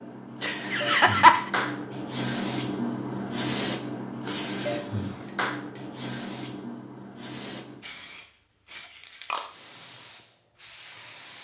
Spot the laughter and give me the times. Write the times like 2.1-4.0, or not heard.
0.4-1.5.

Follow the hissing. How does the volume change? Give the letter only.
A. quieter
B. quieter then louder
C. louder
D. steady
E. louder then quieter
A.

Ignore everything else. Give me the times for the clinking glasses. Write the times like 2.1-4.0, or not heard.
4.8-5.8.